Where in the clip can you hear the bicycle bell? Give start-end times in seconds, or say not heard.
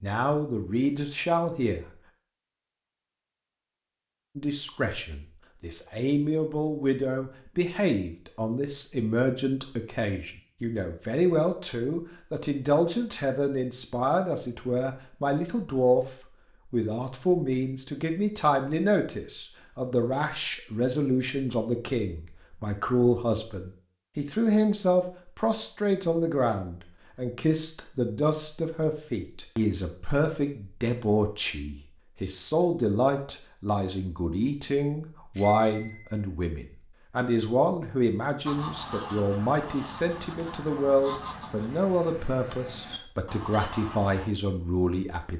35.4-36.2.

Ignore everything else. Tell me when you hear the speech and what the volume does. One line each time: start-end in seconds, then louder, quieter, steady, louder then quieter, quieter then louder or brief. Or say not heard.
0.0-1.9 brief
4.3-45.3 steady.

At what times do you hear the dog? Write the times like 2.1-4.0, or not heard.
not heard.